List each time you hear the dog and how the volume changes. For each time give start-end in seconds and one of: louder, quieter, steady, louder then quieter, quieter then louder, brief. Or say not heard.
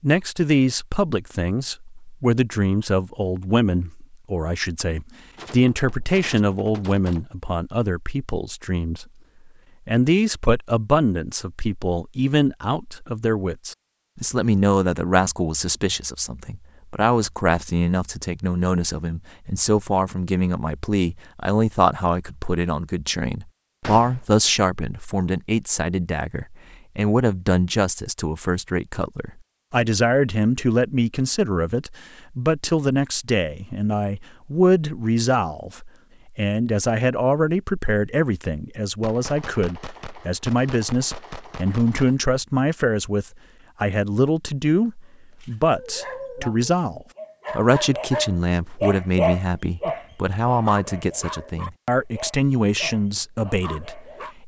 45.4-54.4 louder then quieter.